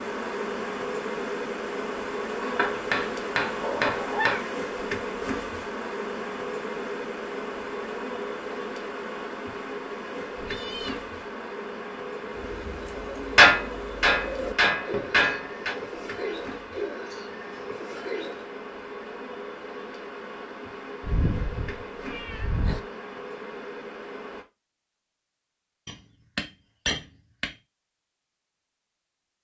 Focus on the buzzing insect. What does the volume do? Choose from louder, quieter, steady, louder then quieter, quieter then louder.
quieter.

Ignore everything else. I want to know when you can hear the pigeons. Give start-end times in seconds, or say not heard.
12.2-18.4.